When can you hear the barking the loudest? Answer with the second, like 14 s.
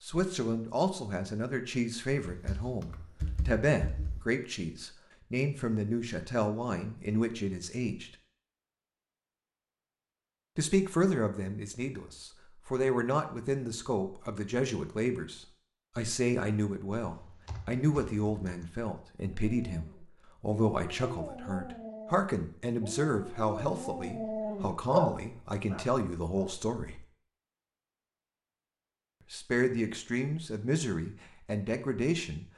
25 s.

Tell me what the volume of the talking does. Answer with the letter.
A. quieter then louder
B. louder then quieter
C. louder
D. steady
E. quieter
D.